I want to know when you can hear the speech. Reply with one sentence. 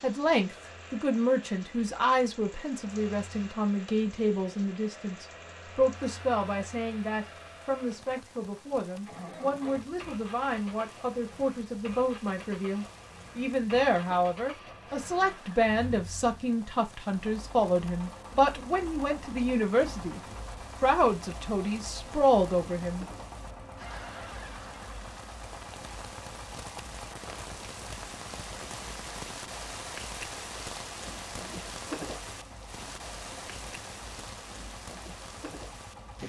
The speech can be heard from 0.0 to 20.2 s and from 20.8 to 23.1 s.